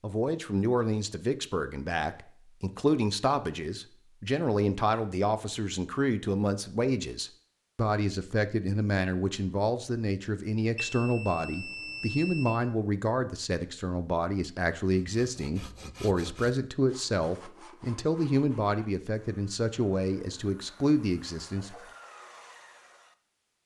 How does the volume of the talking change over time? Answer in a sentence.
The volume of the talking stays about the same.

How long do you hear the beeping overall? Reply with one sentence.
You can hear the beeping for 2 seconds altogether.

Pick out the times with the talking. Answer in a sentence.
You can hear the talking from 0.0 to 21.8 s.